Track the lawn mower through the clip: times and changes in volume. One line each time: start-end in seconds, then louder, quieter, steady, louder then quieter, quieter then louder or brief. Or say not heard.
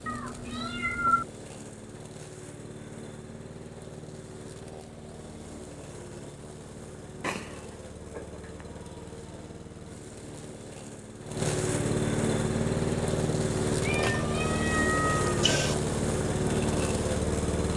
0.0-17.7 louder.